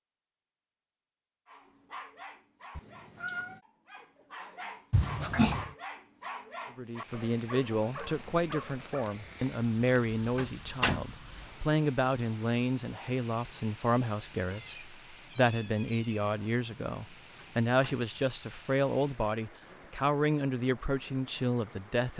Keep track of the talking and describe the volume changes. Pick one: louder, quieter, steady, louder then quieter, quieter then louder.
steady.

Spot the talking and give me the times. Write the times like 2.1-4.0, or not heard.
6.8-22.1.